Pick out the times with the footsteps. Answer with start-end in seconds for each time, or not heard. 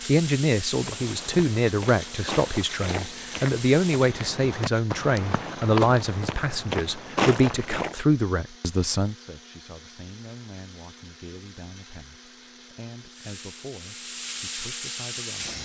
0.8-8.0.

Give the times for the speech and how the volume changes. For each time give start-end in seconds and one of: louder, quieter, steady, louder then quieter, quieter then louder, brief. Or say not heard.
0.1-15.6 quieter.